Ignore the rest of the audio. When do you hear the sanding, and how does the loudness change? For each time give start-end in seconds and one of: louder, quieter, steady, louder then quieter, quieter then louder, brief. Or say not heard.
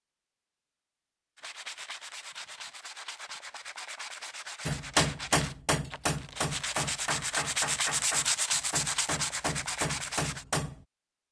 1.4-10.4 louder.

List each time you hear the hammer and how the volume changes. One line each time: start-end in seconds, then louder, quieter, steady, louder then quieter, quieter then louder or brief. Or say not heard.
4.7-10.8 quieter then louder.